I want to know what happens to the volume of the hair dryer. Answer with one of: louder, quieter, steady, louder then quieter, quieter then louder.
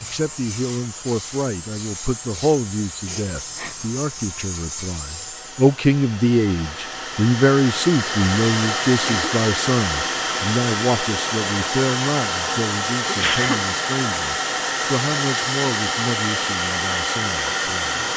louder.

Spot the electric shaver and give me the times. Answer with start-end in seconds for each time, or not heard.
0.0-5.8.